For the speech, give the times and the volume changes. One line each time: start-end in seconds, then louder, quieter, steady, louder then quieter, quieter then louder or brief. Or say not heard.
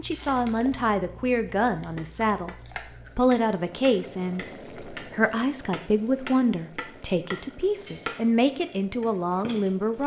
0.0-2.5 brief
3.1-10.0 steady.